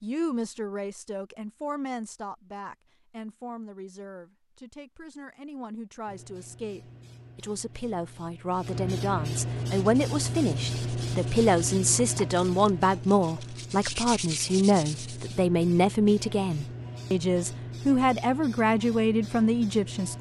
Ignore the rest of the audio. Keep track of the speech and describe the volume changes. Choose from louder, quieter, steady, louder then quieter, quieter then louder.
louder.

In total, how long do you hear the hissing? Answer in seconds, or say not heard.
14 s.